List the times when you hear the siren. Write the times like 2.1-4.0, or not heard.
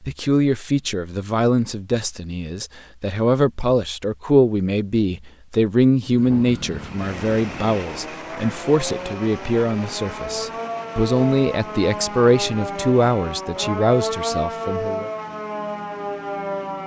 6.1-16.8.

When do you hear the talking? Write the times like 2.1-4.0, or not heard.
0.0-15.1.